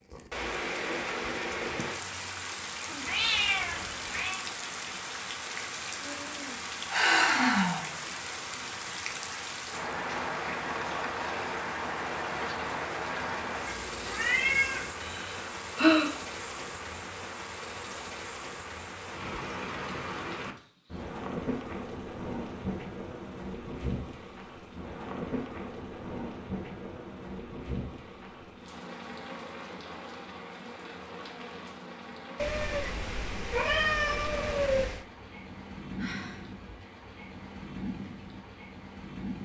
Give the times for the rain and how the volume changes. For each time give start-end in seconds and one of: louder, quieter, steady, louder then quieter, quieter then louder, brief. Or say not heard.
0.0-39.4 quieter.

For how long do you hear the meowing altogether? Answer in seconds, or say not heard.
5 s.